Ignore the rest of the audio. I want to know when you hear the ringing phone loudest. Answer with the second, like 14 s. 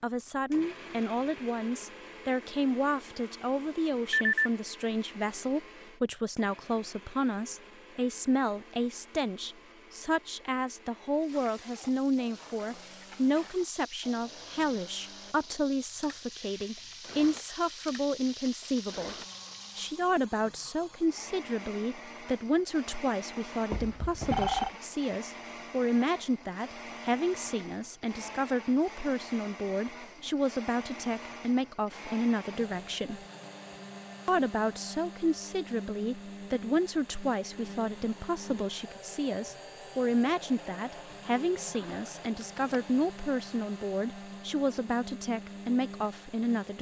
24 s.